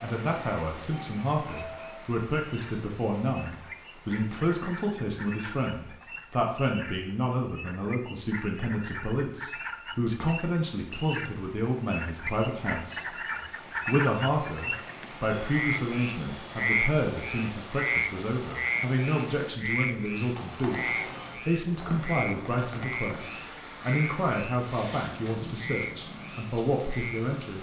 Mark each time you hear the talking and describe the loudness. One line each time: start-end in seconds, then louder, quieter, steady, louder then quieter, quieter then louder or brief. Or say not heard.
0.0-13.1 steady
13.8-27.5 steady.